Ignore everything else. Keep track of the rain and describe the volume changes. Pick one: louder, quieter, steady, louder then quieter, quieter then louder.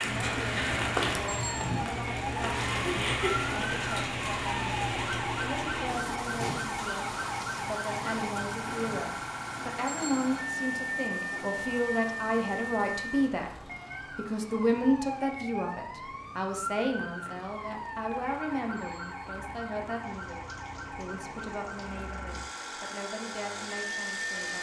quieter.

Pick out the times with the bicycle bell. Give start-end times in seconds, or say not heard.
1.2-1.8, 9.8-10.2, 18.8-19.3.